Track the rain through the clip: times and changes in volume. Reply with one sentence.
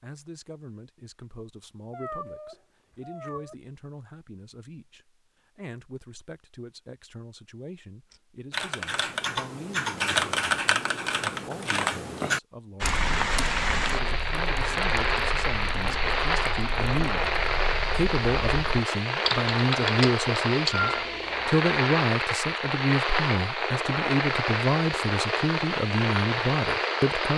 The rain can be heard from 12.8 to 27.3 s, at a steady volume.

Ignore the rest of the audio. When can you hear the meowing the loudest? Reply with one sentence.
The loudest moment of the meowing is at 21 seconds.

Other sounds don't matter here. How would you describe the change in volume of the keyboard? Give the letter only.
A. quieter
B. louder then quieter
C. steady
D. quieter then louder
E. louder
D.